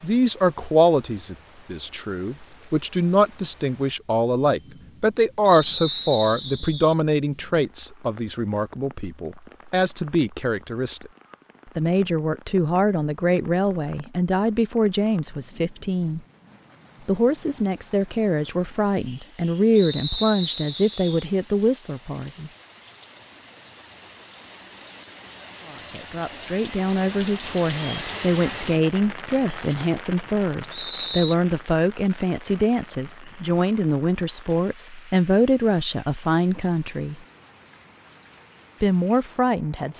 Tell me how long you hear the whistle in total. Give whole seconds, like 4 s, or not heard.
4 s.